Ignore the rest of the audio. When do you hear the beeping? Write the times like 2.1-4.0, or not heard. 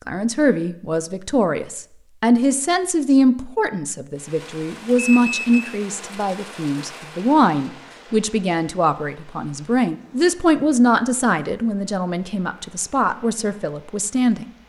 5.0-5.7.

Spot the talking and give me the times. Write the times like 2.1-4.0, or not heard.
0.1-14.4.